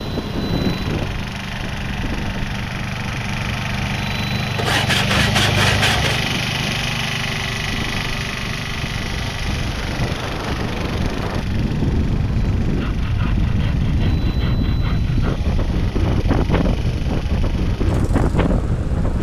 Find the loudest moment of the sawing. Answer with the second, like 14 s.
6 s.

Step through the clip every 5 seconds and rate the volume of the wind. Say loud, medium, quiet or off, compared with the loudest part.
medium, medium, loud, loud.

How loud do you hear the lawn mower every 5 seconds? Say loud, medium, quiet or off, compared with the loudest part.
loud, loud, medium, quiet.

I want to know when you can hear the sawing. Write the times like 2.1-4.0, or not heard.
4.5-6.2, 12.7-15.4.